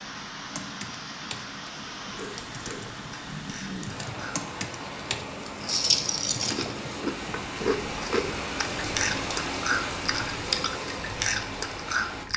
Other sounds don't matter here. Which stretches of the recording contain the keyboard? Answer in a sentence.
You can hear the keyboard from 0.5 to 7.5 s.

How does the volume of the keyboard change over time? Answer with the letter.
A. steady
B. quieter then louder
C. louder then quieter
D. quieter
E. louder
E.